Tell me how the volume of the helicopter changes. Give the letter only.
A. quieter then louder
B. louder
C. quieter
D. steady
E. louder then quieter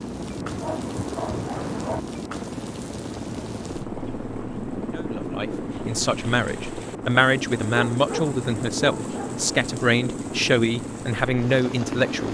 D.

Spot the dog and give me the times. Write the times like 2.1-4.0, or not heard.
0.3-2.0, 7.7-9.3.